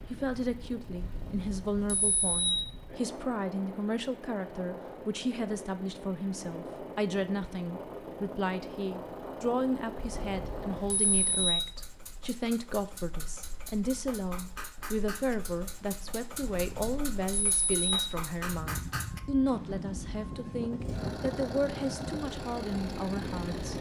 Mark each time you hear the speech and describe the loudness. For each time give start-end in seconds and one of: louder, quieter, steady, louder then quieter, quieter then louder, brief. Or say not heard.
0.1-23.7 steady.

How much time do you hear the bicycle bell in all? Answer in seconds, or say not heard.
5 s.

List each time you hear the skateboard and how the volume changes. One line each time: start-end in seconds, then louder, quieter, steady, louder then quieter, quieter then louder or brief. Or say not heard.
not heard.